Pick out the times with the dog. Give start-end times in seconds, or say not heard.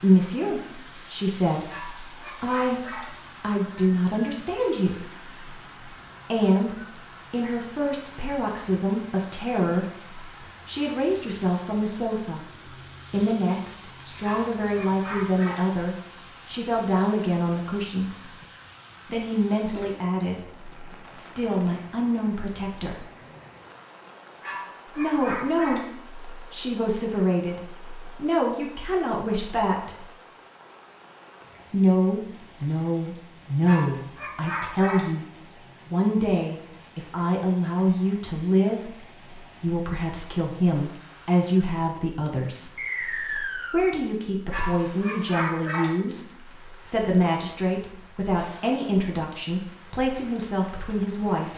1.6-3.1, 14.2-15.7, 24.4-25.9, 33.6-35.1, 44.5-46.0.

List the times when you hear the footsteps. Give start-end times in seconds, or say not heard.
not heard.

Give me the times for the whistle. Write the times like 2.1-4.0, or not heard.
42.8-43.9.